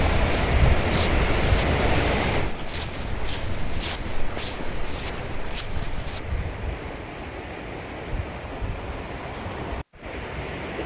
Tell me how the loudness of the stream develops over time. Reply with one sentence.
The volume of the stream goes down.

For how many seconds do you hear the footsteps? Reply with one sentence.
The footsteps can be heard for 6 seconds in total.